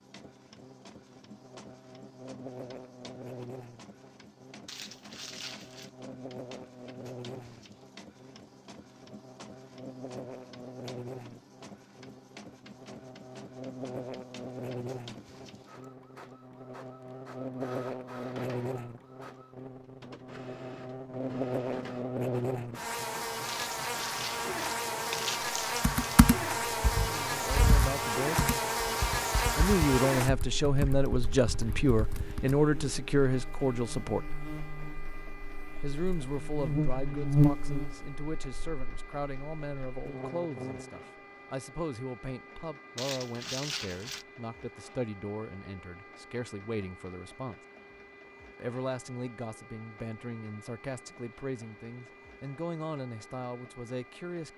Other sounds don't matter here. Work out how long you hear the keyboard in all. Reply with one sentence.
You can hear the keyboard for 7 seconds altogether.